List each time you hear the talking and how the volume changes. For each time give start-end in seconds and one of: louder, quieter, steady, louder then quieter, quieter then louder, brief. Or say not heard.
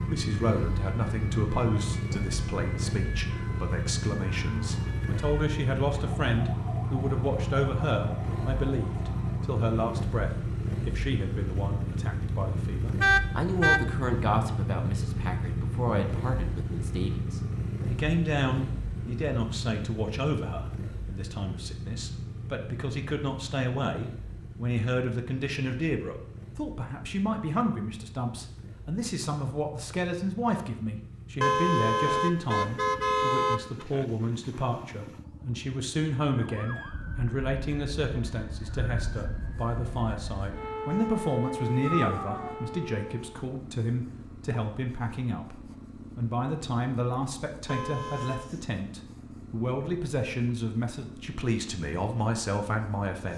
0.0-53.3 steady.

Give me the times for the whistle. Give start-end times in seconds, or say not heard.
not heard.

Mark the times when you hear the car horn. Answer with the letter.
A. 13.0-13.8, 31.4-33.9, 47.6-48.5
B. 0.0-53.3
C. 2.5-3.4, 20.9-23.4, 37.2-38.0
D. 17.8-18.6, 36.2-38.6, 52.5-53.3
A.